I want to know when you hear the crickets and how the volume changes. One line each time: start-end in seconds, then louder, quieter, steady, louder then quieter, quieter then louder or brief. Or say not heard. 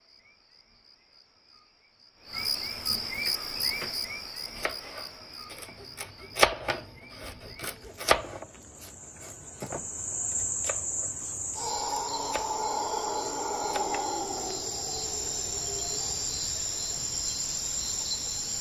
0.0-18.5 quieter then louder.